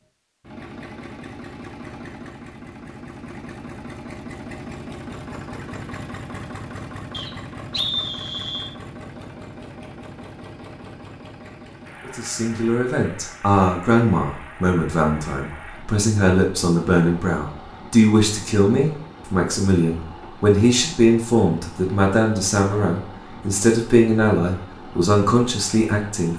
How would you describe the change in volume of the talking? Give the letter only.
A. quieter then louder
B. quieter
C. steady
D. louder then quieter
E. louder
C.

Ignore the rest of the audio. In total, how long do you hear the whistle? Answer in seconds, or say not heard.
2 s.